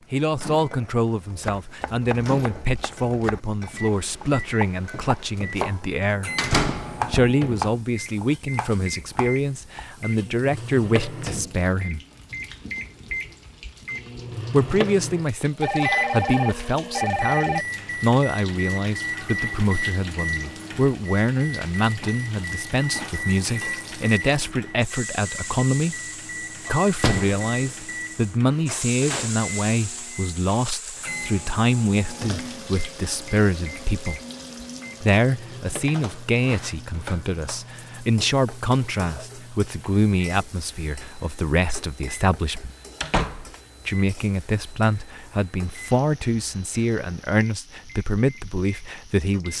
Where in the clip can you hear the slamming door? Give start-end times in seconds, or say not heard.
6.3-7.3, 26.9-27.4, 43.0-43.5.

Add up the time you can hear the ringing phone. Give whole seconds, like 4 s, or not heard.
2 s.